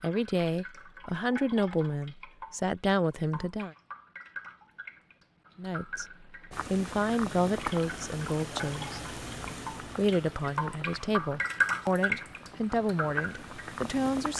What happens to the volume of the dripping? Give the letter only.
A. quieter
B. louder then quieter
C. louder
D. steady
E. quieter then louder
C.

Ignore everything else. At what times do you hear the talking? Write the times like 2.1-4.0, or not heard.
0.0-3.8, 5.5-9.0, 9.9-14.3.